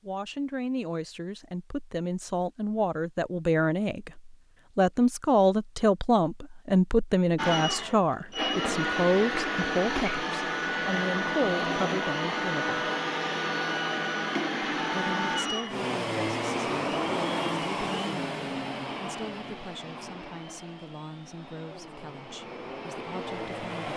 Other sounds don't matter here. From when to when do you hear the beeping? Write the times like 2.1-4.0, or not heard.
not heard.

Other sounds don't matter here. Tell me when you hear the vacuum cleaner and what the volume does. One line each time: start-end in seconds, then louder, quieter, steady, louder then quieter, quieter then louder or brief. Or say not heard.
7.3-23.9 quieter.